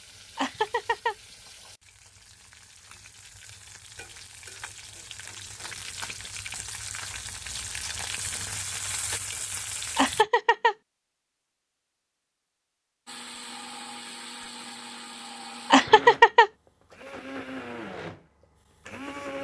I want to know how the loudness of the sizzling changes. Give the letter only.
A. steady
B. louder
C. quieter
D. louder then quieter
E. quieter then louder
B.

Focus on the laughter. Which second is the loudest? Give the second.
16 s.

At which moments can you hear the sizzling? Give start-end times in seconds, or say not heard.
0.0-10.2.